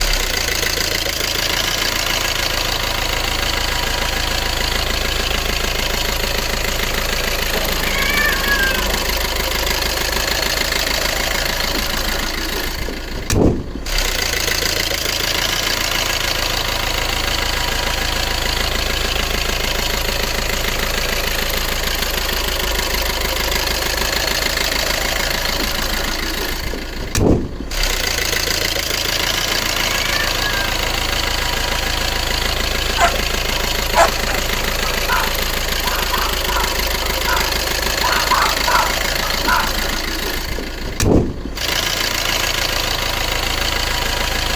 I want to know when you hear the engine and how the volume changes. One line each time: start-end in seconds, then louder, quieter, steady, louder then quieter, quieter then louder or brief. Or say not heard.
0.0-44.5 steady.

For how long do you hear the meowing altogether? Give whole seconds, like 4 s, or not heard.
3 s.